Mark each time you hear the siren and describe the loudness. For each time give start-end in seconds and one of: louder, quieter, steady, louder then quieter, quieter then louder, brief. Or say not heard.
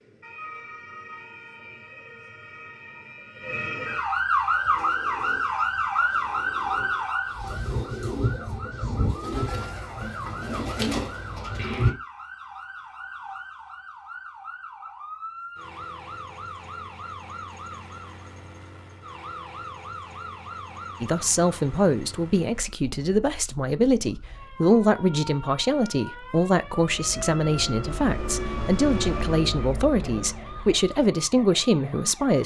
0.0-32.4 quieter.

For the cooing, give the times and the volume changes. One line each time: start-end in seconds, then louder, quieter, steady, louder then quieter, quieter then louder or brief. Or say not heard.
4.3-11.9 louder.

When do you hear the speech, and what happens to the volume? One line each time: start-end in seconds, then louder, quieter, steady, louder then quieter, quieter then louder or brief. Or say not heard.
21.0-32.4 steady.